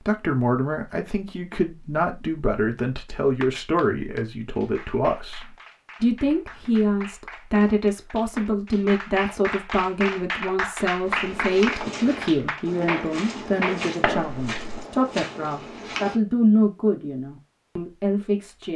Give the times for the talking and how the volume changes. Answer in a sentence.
You can hear the talking from 0.1 to 18.7 s, at a steady volume.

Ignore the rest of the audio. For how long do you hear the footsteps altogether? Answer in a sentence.
You can hear the footsteps for 5 seconds altogether.